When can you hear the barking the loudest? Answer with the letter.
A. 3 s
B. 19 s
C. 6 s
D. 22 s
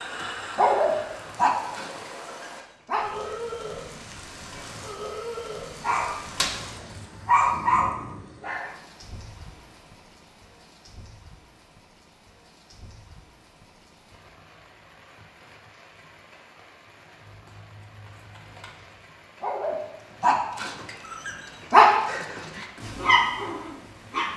D.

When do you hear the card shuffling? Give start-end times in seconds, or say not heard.
6.8-7.2, 17.2-19.1.